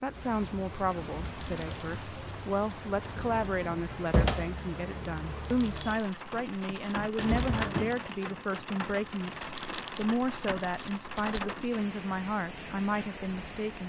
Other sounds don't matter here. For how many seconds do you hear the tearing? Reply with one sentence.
The tearing can be heard for 6 seconds in total.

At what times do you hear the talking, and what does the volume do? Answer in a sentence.
You can hear the talking from 0.0 to 13.8 s, at a steady volume.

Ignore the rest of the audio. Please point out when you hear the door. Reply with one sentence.
You can hear the door from 3.0 to 4.6 s and from 7.2 to 8.0 s.